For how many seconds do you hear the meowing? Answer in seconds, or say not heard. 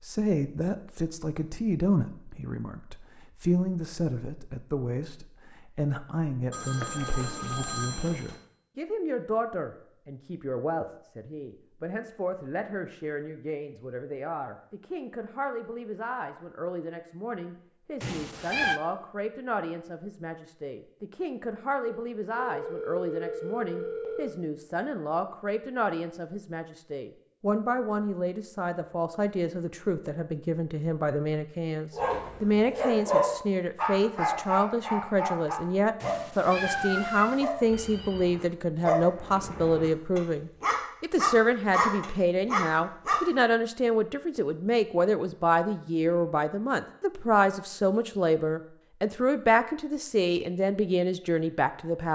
2 s.